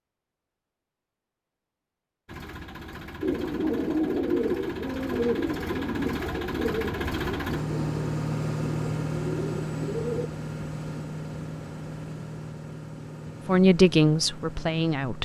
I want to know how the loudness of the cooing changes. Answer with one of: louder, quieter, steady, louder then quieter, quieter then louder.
quieter.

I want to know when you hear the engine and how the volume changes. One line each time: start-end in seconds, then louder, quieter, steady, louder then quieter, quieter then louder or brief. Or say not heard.
2.2-15.2 louder then quieter.